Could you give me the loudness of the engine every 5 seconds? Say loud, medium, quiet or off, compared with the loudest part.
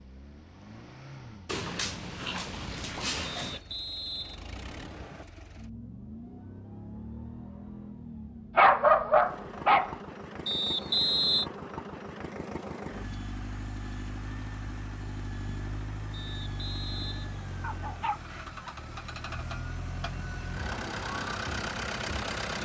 quiet, medium, medium, medium, loud.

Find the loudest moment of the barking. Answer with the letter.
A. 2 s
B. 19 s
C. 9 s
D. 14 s
C.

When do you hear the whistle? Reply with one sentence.
You can hear the whistle from 3.2 to 5.2 s, from 10.4 to 11.4 s and from 16.1 to 18.1 s.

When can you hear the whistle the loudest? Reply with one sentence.
The volume of the whistle peaks at 11 seconds.